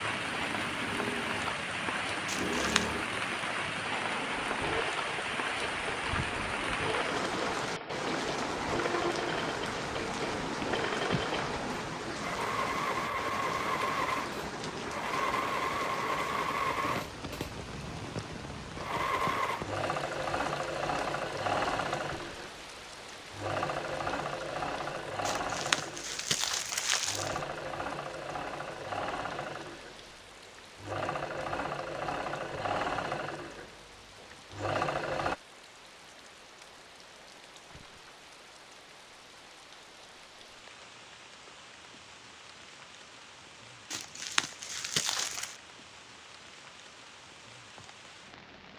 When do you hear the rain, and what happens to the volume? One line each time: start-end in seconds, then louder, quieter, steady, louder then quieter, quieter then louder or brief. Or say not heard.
0.0-48.7 quieter.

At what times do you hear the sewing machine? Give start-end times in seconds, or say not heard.
0.0-35.4.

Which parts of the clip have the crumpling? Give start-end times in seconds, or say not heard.
2.2-2.9, 25.2-27.4, 43.9-45.5.